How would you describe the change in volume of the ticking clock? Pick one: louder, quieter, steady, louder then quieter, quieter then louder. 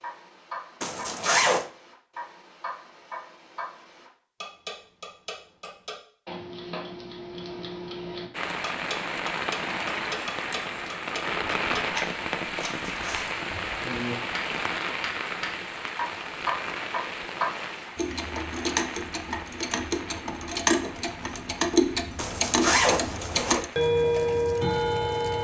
louder.